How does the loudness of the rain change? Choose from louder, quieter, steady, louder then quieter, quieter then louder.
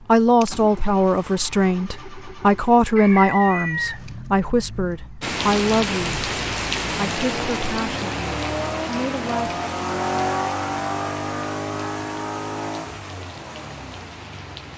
quieter.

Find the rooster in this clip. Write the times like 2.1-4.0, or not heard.
3.0-4.0.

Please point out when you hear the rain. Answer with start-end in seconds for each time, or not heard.
5.2-14.7.